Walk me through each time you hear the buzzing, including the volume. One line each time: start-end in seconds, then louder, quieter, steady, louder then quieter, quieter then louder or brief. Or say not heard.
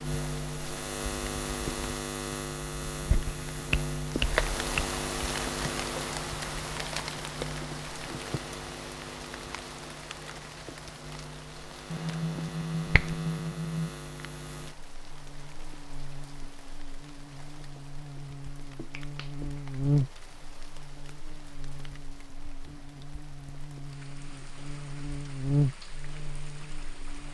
0.0-27.2 quieter then louder.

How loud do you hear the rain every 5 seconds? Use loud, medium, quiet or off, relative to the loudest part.
loud, loud, medium, quiet, quiet, quiet.